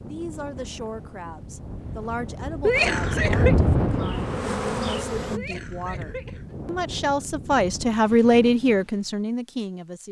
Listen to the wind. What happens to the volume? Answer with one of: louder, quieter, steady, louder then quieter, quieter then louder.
louder then quieter.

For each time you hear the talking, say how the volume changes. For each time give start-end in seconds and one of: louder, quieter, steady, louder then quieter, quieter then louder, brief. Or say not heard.
0.0-10.0 louder.